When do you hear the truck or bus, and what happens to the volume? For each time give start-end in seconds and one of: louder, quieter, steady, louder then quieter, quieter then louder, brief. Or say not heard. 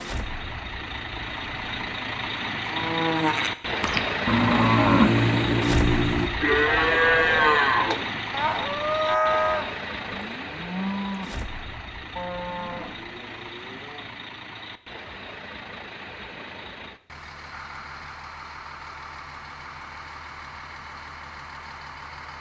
0.0-22.3 quieter.